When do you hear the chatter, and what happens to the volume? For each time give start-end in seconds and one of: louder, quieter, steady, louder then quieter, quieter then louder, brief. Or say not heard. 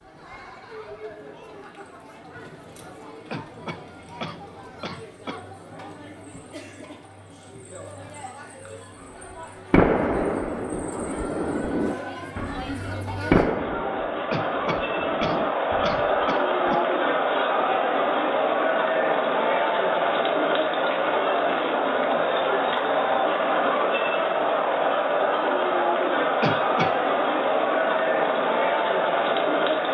0.0-29.9 louder.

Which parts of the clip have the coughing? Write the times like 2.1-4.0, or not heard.
3.3-5.4, 14.3-16.8, 26.4-26.9.